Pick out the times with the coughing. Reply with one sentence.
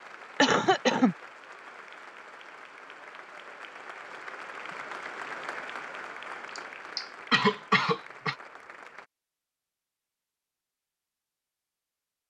You can hear the coughing from 0.4 to 1.1 s and from 6.5 to 8.3 s.